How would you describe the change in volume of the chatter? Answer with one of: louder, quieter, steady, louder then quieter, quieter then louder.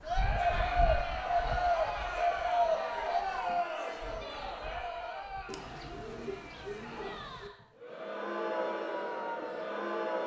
quieter then louder.